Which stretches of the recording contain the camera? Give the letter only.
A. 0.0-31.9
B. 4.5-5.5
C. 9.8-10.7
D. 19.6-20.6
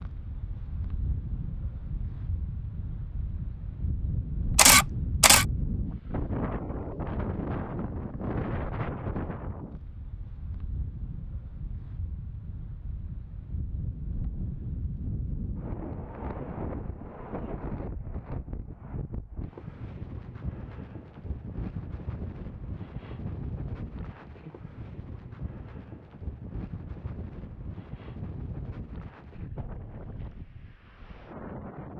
B.